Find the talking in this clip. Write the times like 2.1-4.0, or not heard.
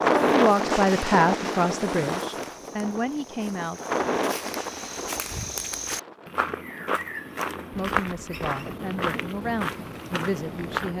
0.2-3.8, 7.8-10.9.